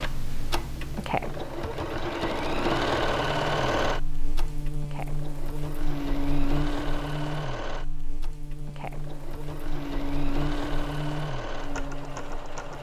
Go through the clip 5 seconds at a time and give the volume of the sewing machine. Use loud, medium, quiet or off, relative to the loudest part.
loud, medium, medium.